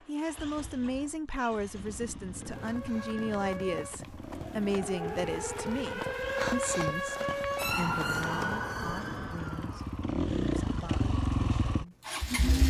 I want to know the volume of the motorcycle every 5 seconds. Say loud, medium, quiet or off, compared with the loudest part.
quiet, quiet, loud.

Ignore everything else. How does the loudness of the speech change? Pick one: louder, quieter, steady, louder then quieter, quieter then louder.
quieter.